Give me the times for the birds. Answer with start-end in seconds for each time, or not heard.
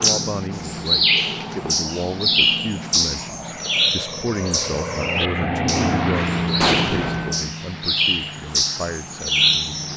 0.0-9.9.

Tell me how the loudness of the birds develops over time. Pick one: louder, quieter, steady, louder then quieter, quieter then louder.
quieter then louder.